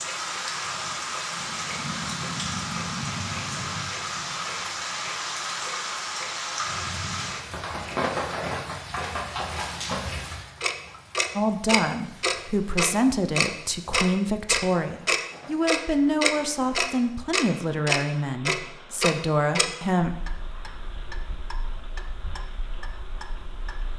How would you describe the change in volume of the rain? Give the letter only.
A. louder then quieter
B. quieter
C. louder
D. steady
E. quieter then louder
B.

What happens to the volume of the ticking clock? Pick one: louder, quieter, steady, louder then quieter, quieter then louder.
louder then quieter.